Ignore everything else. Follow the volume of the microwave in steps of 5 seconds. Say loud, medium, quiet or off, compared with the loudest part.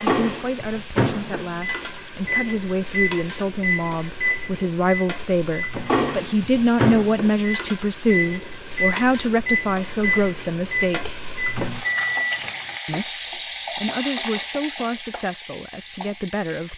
loud, loud, loud, off.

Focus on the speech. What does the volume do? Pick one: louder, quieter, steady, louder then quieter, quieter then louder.
louder then quieter.